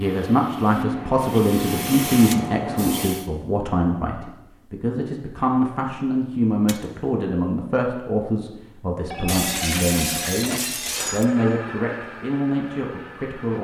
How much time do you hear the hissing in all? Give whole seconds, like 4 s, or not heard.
3 s.